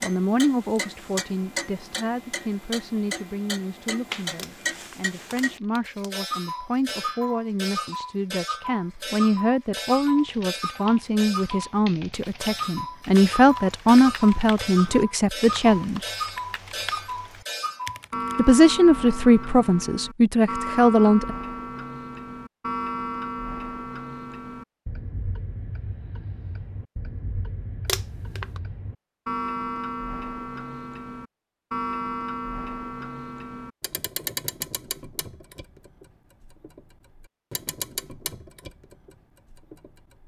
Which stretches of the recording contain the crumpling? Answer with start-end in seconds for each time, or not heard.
4.3-6.1, 27.9-28.6.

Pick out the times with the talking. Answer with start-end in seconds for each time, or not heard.
0.0-16.0, 18.4-21.4.